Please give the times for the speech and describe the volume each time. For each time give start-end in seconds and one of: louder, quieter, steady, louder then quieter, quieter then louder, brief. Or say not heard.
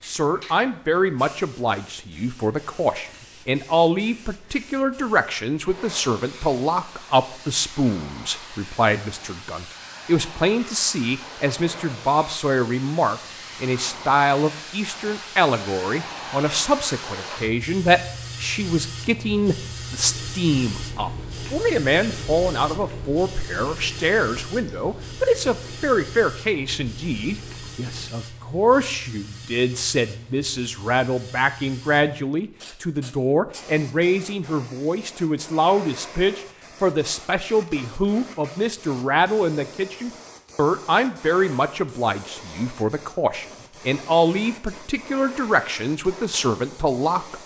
0.1-47.4 steady.